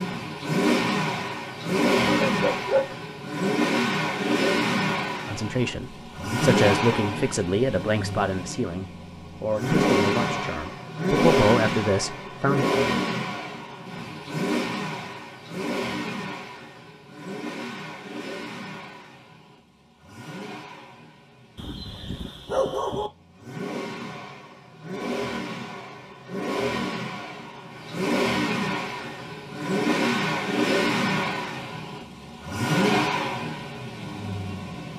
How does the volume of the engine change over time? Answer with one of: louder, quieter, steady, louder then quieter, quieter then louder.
quieter then louder.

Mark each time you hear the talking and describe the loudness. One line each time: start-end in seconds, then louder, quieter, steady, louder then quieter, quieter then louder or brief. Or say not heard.
5.2-12.7 quieter then louder.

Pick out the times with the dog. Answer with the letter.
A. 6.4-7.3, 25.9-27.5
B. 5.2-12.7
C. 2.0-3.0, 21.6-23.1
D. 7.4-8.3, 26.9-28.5
C.